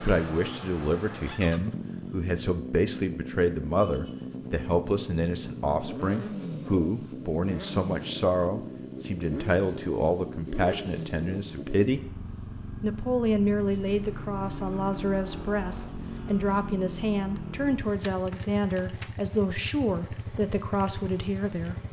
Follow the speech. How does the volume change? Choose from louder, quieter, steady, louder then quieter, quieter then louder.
steady.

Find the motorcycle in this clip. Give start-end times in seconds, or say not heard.
0.0-21.8.